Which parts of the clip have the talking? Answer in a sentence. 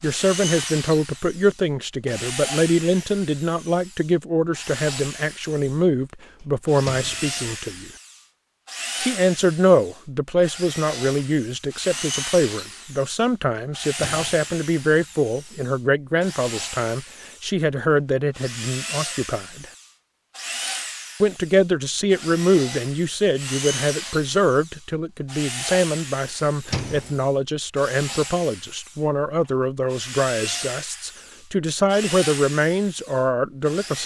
The talking can be heard from 0.0 to 7.9 s, from 9.0 to 19.6 s and from 21.2 to 34.0 s.